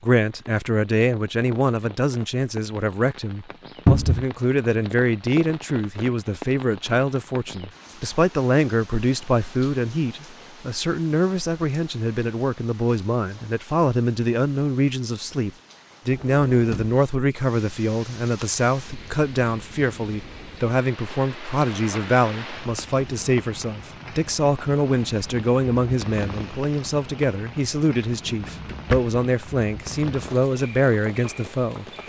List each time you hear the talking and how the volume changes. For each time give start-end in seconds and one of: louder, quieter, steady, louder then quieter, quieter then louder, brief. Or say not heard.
0.0-31.9 steady.